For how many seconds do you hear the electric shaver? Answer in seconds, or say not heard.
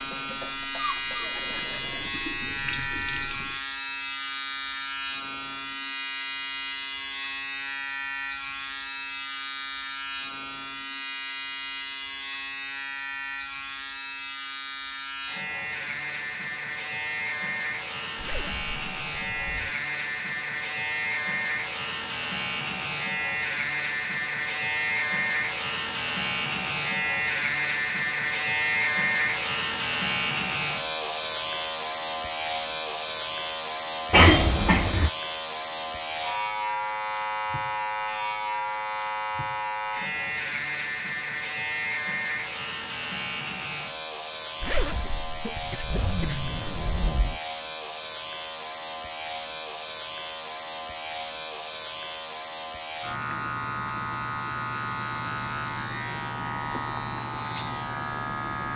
59 s.